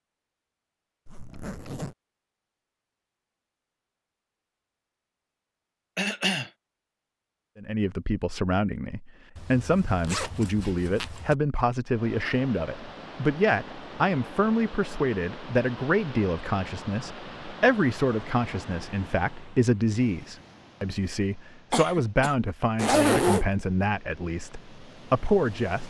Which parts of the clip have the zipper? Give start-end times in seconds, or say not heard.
1.1-1.9, 9.3-11.3, 22.8-23.4.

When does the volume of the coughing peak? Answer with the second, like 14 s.
6 s.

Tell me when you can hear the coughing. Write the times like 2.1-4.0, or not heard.
6.0-6.5, 21.7-22.4.